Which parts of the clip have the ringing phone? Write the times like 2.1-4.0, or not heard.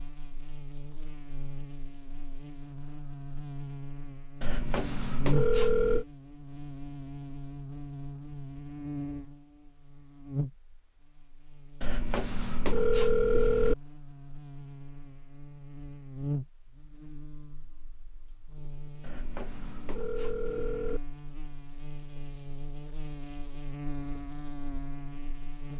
4.4-6.0, 11.8-13.8, 19.0-21.0.